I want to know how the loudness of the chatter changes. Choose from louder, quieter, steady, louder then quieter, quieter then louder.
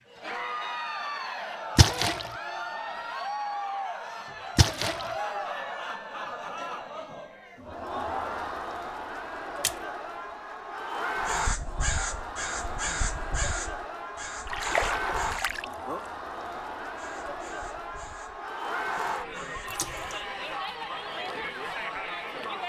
steady.